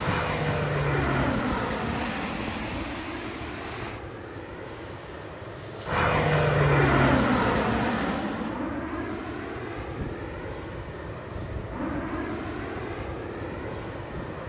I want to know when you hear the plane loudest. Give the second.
7 s.